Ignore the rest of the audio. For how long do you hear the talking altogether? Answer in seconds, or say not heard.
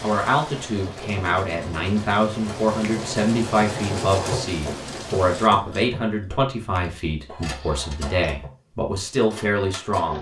10 s.